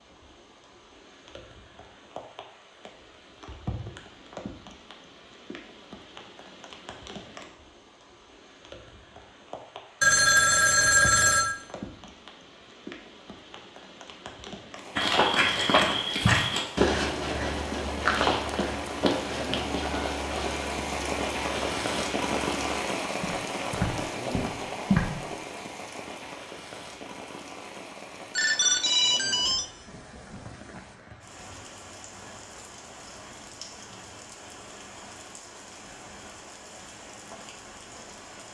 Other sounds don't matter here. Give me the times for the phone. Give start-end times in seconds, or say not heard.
10.0-11.6, 28.4-29.6.